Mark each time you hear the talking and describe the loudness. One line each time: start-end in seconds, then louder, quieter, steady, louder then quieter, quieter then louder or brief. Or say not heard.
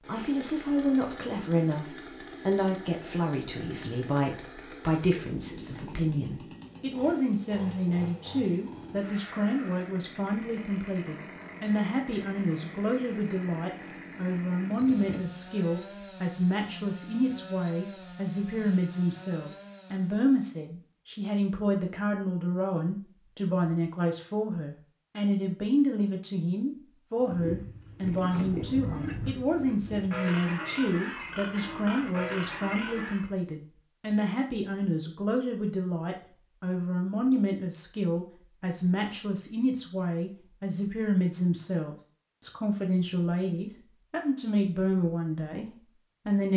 0.1-46.5 steady.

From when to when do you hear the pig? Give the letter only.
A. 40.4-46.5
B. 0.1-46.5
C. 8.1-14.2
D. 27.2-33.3
D.